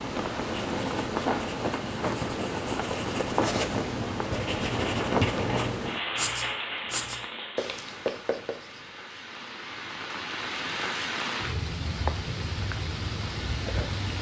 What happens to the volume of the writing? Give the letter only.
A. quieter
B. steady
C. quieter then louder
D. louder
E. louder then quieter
D.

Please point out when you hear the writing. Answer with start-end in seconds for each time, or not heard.
0.5-8.9.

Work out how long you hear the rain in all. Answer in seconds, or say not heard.
14 s.